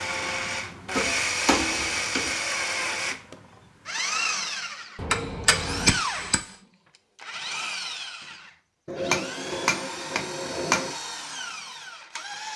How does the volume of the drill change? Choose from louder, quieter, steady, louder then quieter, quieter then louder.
quieter.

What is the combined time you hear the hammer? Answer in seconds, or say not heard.
5 s.